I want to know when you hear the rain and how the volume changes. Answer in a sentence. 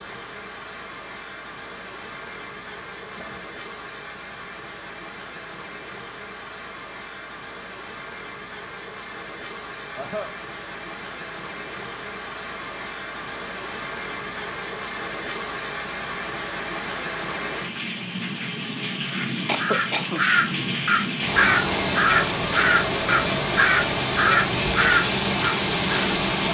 You can hear the rain from 0.0 to 26.4 s, getting louder.